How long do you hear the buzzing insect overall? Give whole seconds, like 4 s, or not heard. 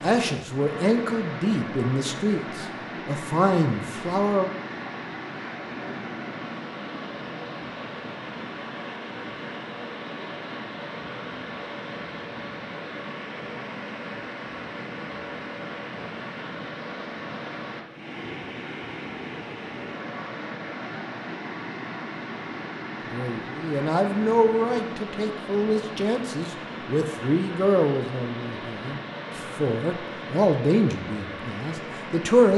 not heard.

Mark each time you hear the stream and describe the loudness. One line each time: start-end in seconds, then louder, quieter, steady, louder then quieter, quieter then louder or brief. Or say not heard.
0.0-32.5 steady.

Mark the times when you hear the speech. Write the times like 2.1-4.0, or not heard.
0.0-4.5, 23.1-32.5.